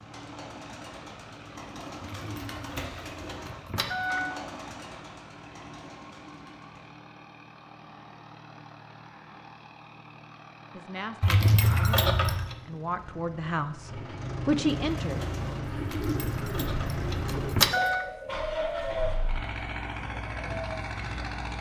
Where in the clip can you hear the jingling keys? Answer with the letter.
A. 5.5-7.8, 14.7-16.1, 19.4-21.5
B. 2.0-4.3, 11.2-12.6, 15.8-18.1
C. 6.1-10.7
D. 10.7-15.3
B.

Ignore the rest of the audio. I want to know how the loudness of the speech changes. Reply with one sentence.
The volume of the speech goes up.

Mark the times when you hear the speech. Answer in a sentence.
You can hear the speech from 10.7 to 15.3 s.